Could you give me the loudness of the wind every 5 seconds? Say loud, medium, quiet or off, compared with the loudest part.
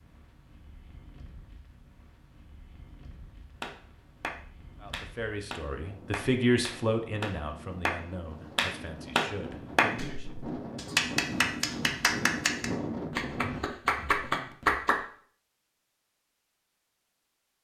quiet, medium, loud, off.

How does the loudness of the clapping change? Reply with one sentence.
The volume of the clapping goes up.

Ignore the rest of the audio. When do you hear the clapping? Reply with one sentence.
The clapping can be heard from 3.6 to 15.0 s.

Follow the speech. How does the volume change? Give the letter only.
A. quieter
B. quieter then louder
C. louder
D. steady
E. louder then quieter
E.